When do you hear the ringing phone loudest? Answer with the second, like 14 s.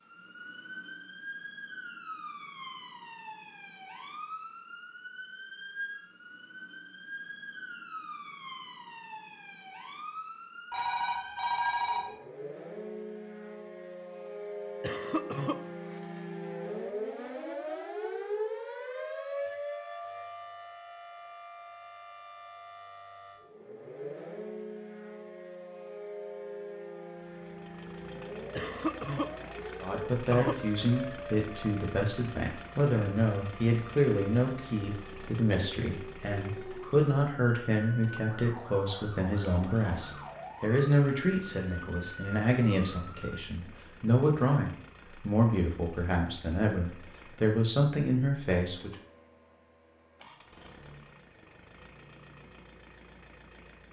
12 s.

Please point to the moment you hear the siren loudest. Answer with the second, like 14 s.
18 s.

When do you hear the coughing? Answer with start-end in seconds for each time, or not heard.
14.8-16.2, 28.6-30.6.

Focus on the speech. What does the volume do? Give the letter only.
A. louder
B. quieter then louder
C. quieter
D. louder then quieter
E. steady
E.